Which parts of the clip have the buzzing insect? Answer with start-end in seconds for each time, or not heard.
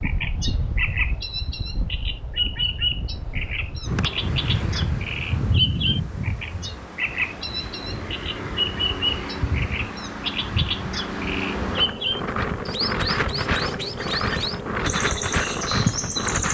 11.7-16.3.